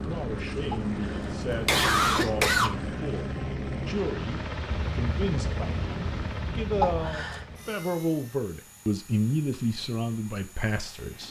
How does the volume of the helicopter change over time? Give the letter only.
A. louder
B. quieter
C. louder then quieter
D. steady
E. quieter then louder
B.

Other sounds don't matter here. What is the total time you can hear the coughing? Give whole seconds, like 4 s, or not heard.
3 s.